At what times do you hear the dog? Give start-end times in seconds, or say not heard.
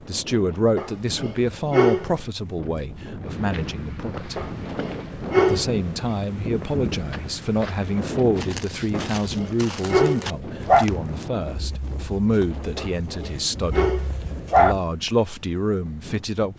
0.8-2.1, 4.3-6.0, 8.9-10.8, 12.8-14.8.